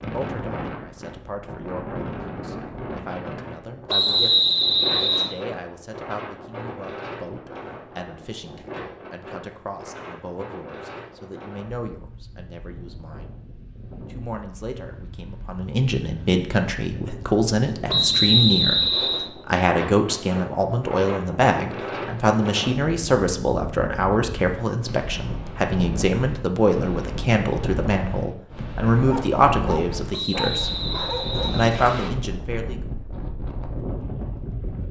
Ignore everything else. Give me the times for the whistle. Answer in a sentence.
You can hear the whistle from 3.9 to 5.3 s, from 17.9 to 19.2 s and from 30.1 to 32.1 s.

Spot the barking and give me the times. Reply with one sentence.
You can hear the barking from 28.9 to 31.6 s.